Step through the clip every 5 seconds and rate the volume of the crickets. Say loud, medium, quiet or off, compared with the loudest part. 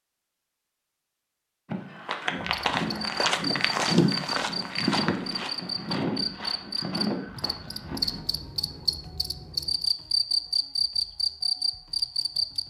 medium, medium, loud.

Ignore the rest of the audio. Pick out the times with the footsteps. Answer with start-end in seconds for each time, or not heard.
1.6-8.2.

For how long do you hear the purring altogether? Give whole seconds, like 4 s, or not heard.
not heard.